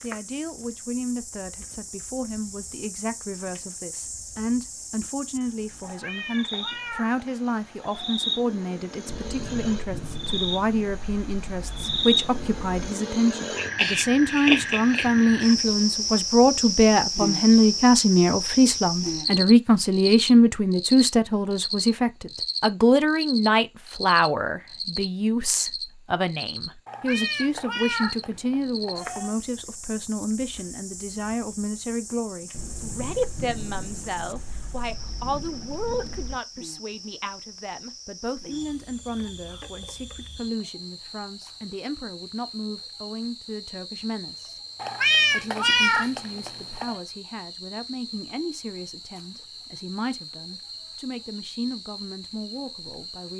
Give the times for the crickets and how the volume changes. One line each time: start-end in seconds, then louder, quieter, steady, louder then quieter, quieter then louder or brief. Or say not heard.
0.0-53.3 louder then quieter.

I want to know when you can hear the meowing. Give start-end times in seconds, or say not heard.
5.8-8.2, 26.9-29.4, 44.8-47.0.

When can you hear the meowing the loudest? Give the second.
45 s.